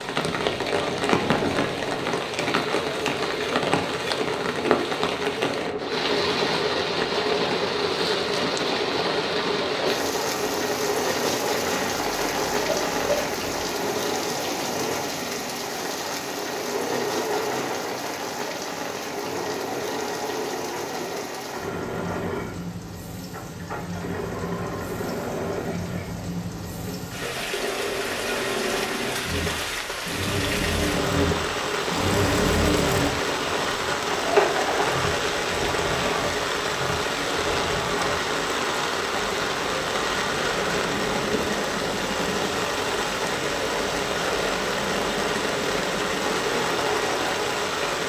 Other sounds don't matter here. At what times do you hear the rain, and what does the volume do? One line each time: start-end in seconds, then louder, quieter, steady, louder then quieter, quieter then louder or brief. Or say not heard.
0.0-48.0 quieter then louder.